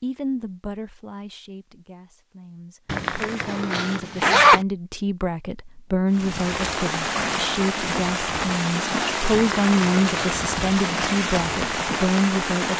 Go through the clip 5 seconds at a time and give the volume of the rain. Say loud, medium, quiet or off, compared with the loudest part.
off, loud, loud.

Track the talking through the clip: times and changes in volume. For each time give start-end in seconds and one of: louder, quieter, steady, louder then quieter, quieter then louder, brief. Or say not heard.
0.0-12.7 louder.